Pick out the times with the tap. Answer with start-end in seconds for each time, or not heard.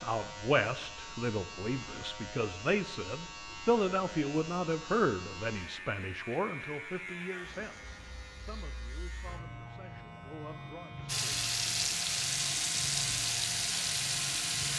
11.1-14.7.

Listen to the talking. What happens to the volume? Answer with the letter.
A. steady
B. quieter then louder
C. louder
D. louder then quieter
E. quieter
E.